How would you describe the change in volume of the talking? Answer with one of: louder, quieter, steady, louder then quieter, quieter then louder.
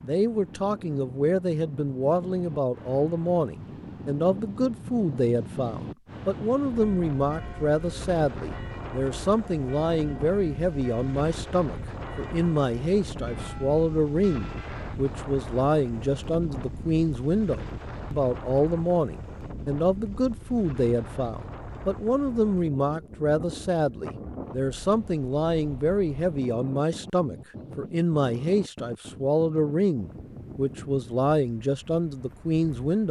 steady.